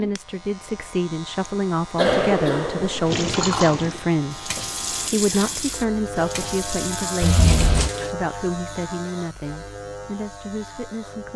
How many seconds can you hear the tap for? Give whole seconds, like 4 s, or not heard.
5 s.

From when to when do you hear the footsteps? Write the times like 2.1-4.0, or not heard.
not heard.